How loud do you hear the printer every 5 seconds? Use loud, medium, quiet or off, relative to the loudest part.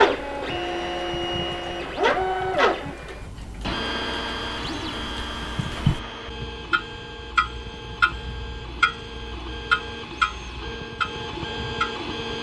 loud, medium, medium.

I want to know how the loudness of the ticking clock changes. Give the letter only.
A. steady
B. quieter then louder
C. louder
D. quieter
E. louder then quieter
C.